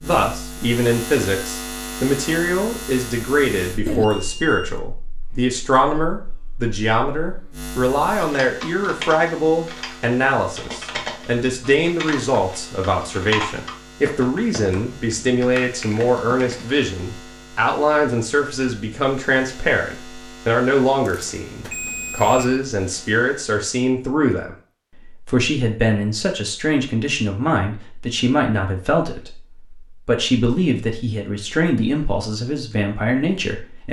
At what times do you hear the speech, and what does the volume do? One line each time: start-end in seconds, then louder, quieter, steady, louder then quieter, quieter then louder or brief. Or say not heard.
0.0-33.8 steady.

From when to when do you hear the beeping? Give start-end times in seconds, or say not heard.
3.9-4.8, 21.0-22.4.